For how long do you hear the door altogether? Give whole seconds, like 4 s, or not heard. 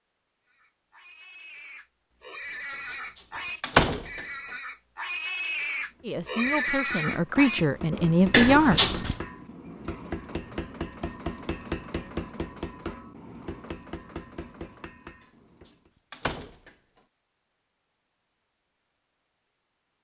2 s.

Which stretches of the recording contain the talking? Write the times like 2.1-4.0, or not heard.
6.0-8.8.